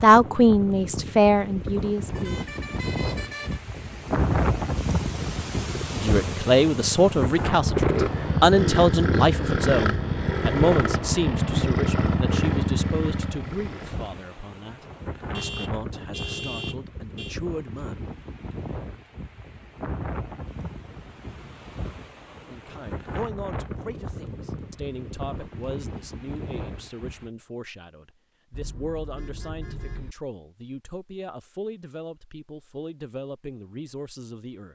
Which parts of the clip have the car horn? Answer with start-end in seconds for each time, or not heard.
2.0-3.6, 15.3-17.4, 28.5-30.1.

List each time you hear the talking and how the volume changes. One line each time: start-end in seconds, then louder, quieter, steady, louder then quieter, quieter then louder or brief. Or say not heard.
0.0-2.3 brief
5.9-17.9 quieter
22.4-34.6 steady.